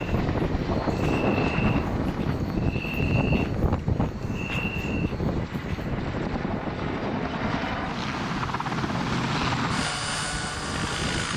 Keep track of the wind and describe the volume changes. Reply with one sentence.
The volume of the wind goes down.